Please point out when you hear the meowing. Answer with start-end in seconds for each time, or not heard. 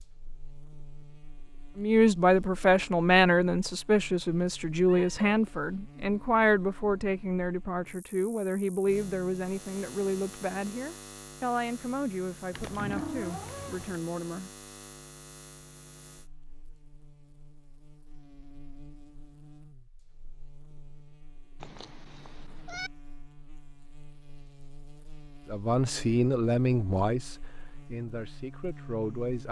4.8-5.3, 12.5-14.0, 21.6-22.9.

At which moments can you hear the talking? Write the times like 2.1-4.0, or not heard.
1.8-14.5, 25.5-29.4.